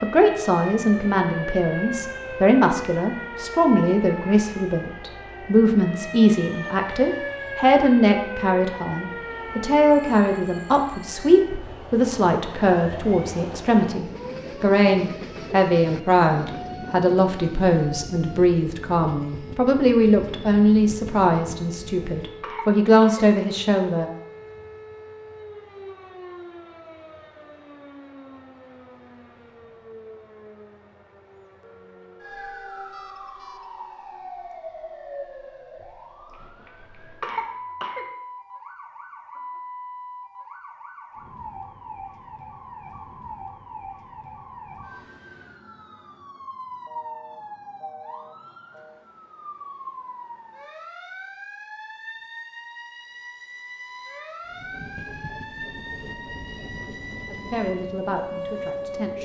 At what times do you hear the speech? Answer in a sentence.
The speech can be heard from 0.0 to 24.1 s and from 57.2 to 59.2 s.